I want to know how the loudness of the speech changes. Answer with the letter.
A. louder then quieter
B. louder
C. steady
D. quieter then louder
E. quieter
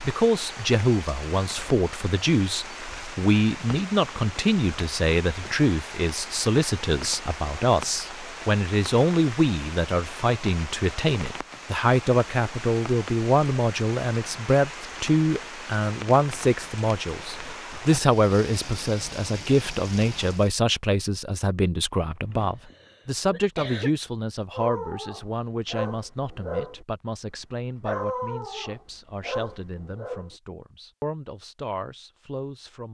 E.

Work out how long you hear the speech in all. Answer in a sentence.
You can hear the speech for 33 seconds altogether.